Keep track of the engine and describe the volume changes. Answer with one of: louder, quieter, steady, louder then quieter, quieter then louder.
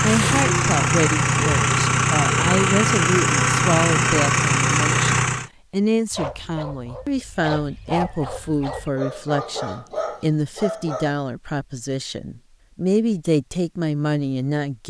steady.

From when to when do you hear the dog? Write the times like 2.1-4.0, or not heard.
6.1-11.2.